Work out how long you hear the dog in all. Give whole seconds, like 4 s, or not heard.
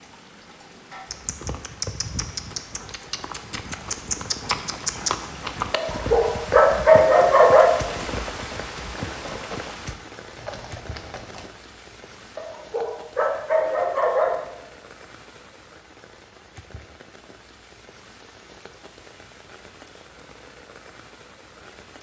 4 s.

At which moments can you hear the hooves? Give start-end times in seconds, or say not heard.
1.1-11.5.